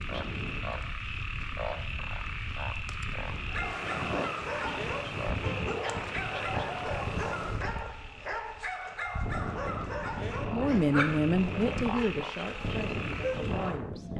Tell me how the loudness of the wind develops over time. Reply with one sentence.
The loudness of the wind goes up.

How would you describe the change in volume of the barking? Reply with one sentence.
The volume of the barking stays about the same.